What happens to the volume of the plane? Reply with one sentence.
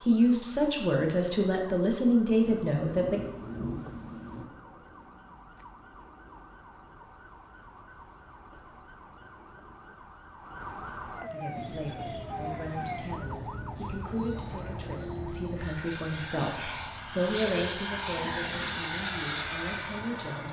The volume of the plane goes up.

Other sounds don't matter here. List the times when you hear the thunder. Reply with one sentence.
You can hear the thunder from 2.6 to 4.5 s.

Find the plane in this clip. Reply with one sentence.
The plane can be heard from 11.4 to 20.4 s.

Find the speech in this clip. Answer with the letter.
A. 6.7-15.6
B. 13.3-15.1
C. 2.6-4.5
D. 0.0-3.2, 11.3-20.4
D.